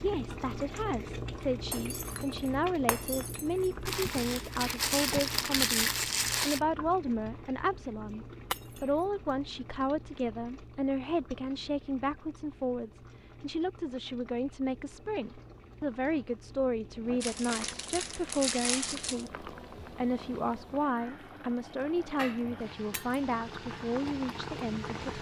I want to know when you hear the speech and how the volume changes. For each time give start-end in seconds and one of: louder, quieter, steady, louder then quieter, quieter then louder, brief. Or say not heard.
0.0-25.1 steady.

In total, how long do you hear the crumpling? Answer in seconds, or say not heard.
5 s.